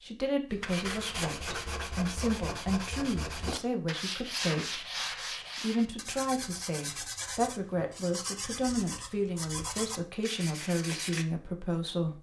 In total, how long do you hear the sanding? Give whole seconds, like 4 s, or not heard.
11 s.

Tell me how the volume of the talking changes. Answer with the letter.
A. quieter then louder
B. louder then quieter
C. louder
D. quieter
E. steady
E.